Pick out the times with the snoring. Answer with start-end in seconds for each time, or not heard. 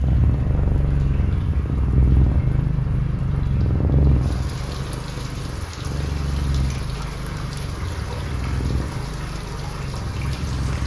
not heard.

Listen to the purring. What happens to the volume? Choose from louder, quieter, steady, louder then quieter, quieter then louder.
quieter.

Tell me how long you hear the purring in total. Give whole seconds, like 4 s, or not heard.
11 s.